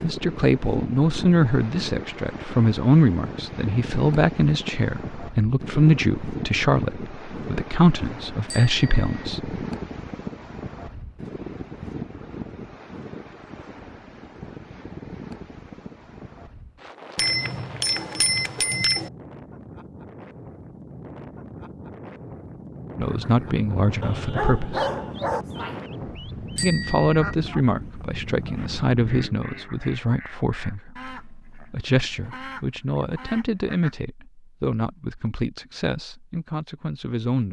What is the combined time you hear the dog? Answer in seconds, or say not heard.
2 s.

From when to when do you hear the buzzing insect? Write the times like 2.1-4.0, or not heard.
not heard.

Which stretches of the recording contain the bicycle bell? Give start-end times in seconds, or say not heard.
8.4-9.1, 17.1-19.1, 26.6-27.4.